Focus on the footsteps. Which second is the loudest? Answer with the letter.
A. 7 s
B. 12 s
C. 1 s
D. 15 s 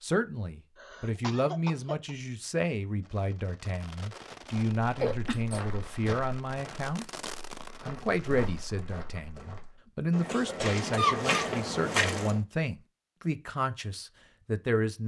B.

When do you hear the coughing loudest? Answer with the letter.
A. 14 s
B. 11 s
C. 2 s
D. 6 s
B.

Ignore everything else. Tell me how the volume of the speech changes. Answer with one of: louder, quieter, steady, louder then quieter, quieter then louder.
steady.